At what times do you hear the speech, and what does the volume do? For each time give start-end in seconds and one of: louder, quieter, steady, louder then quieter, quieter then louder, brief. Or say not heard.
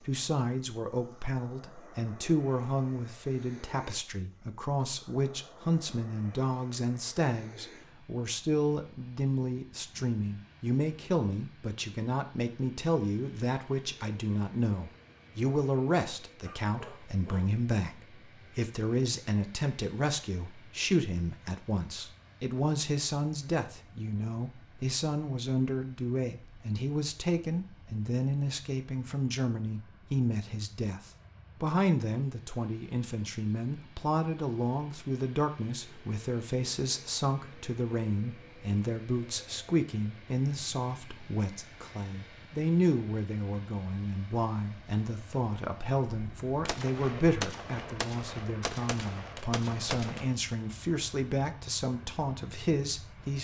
0.0-53.3 steady.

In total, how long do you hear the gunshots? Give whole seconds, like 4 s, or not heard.
4 s.